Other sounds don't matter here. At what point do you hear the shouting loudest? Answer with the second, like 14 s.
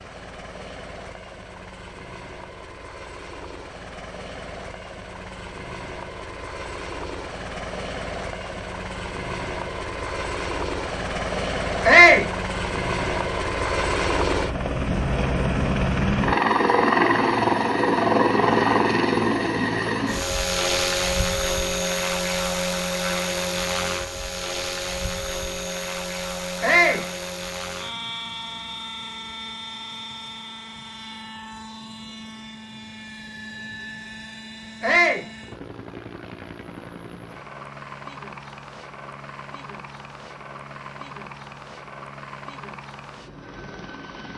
12 s.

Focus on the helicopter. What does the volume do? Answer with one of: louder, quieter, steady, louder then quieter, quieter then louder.
louder then quieter.